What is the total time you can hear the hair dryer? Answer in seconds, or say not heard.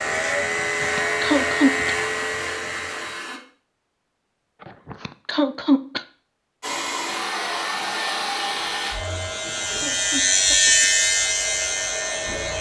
9 s.